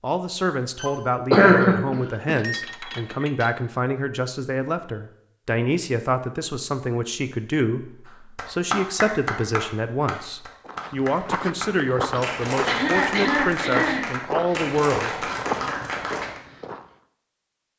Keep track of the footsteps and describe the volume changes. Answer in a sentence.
The volume of the footsteps stays about the same.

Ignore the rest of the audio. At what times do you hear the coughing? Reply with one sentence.
You can hear the coughing from 0.8 to 2.3 s and from 12.7 to 14.1 s.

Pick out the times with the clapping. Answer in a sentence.
You can hear the clapping from 8.1 to 16.4 s.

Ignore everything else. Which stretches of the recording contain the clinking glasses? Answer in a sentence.
You can hear the clinking glasses from 1.9 to 3.5 s.